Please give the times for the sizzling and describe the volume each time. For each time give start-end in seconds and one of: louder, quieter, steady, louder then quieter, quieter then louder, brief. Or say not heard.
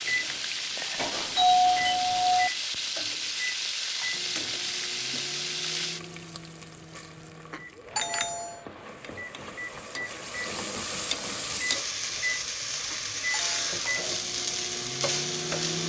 0.0-15.8 quieter then louder.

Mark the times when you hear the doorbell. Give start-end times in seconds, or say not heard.
0.9-2.5, 7.5-8.6, 12.9-13.8.